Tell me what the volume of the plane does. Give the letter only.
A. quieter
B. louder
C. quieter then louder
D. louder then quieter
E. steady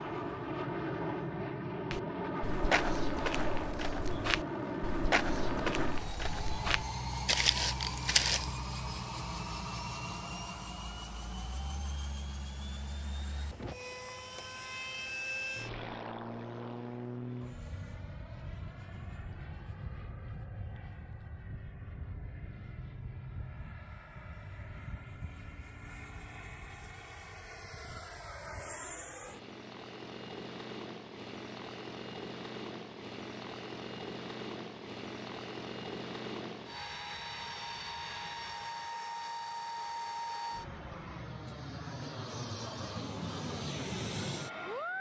C.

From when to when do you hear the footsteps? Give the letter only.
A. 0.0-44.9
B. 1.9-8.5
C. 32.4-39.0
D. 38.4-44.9
B.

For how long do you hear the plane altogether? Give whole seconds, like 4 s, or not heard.
45 s.